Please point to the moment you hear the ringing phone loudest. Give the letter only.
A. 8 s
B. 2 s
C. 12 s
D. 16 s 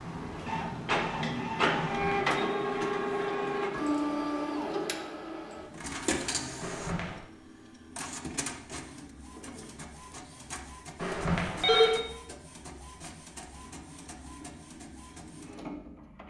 C.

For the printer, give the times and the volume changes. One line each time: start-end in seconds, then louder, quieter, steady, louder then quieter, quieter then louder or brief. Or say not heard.
0.0-16.2 quieter.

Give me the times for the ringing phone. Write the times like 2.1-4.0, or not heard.
1.9-2.4, 6.6-7.2, 11.0-12.0.